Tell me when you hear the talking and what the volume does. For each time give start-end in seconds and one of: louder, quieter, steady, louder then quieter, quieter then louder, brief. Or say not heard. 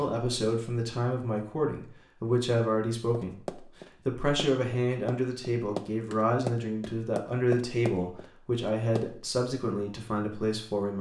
0.0-10.9 steady.